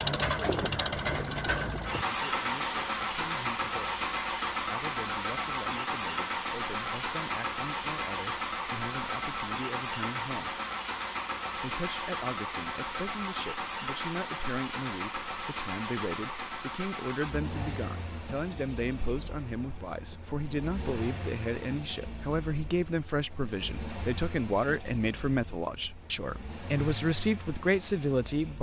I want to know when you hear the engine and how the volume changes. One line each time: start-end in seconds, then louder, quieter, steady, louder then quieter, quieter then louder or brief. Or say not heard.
0.0-28.5 quieter.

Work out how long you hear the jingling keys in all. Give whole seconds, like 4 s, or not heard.
2 s.